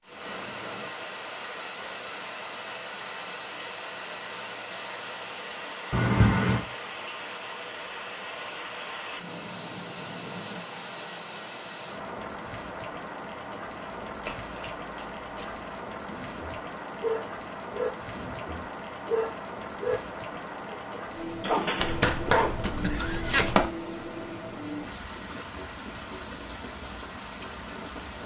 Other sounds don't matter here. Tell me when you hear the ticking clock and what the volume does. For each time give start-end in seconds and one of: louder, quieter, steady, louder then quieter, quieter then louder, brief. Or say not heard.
not heard.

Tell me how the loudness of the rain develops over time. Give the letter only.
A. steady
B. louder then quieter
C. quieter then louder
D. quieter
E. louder
A.